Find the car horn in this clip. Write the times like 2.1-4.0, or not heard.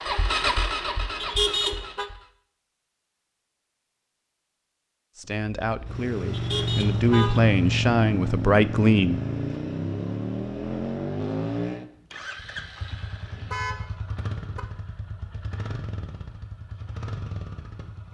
1.2-2.0, 6.3-7.5, 13.3-14.6.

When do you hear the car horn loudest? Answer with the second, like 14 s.
2 s.